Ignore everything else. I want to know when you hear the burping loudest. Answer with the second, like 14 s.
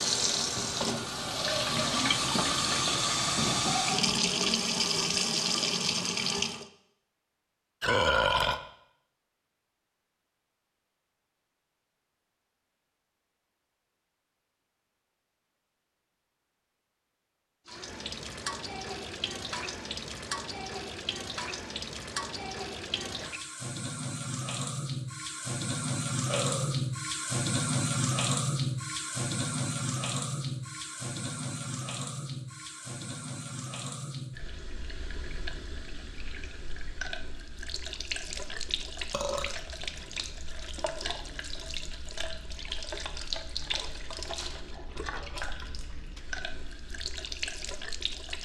8 s.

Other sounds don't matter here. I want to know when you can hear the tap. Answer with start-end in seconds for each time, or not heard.
0.0-6.7, 17.6-48.4.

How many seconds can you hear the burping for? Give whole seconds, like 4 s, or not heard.
2 s.